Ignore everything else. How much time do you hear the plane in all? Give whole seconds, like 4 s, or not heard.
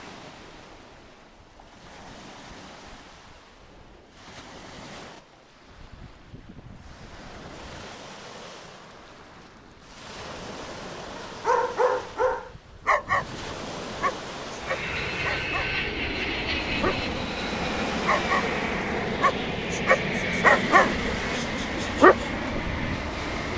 9 s.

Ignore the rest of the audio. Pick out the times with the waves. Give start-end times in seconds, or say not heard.
0.0-23.5.